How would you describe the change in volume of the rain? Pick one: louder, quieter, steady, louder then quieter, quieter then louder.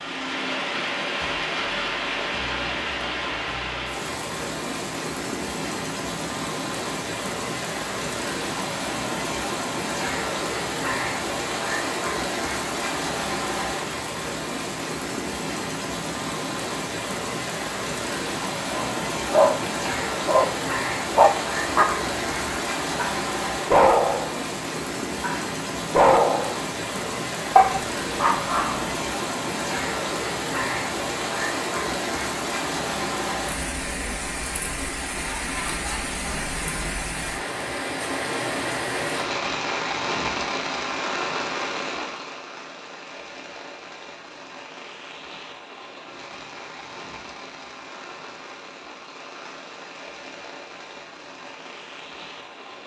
quieter.